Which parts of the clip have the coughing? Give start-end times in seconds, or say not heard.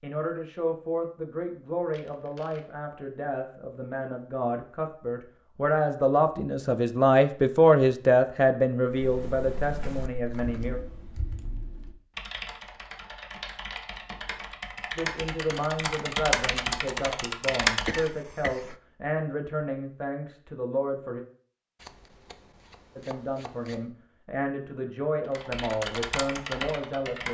17.8-18.8.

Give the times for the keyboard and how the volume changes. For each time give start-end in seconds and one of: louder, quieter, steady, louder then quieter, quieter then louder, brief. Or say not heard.
8.9-18.1 louder
25.2-27.2 brief.